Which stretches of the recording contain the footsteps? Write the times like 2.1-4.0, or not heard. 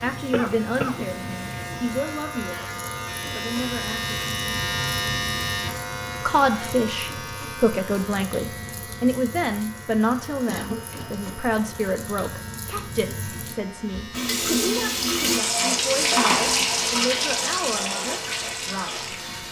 not heard.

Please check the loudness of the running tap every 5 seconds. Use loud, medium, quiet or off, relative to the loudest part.
quiet, quiet, medium, loud.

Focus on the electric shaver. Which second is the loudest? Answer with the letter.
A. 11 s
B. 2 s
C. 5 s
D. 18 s
C.